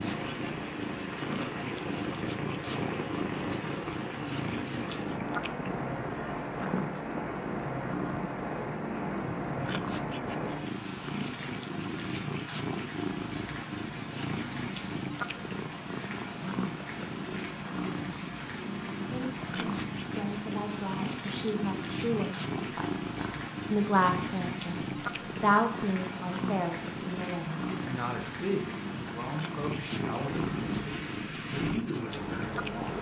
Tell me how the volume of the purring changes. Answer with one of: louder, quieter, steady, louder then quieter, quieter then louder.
steady.